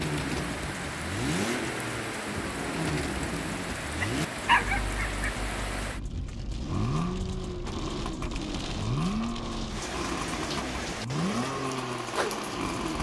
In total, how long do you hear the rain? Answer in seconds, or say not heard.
13 s.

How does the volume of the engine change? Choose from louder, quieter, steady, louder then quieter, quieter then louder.
steady.